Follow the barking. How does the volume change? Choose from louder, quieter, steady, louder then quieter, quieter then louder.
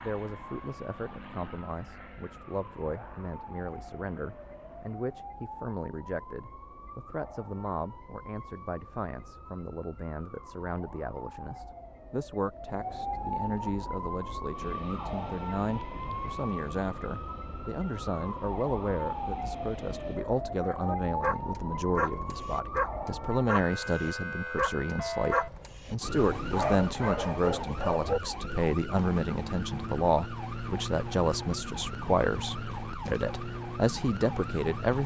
steady.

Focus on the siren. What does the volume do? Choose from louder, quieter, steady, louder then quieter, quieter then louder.
louder.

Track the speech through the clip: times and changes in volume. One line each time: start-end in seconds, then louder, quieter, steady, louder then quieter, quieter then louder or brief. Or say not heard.
0.0-35.0 louder.